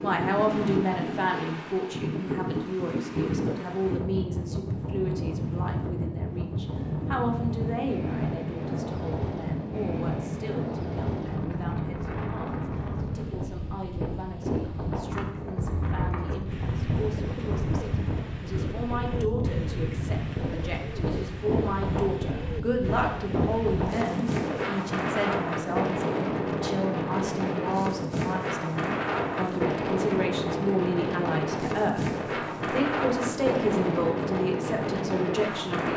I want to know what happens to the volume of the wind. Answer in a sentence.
The volume of the wind stays about the same.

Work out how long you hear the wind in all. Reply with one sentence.
You can hear the wind for 36 seconds altogether.